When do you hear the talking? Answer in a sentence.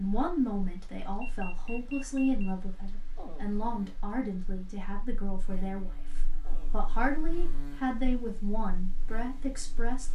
You can hear the talking from 0.0 to 10.1 s.